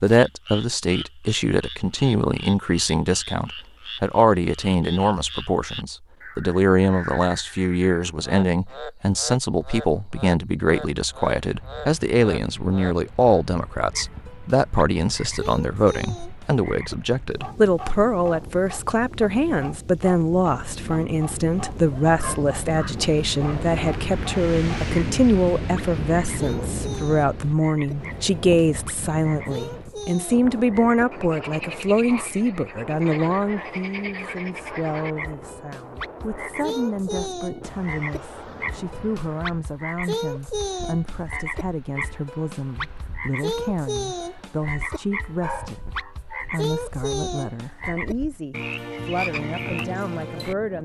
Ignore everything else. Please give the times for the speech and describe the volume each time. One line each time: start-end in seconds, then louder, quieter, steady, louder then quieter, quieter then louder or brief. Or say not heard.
0.0-50.8 quieter.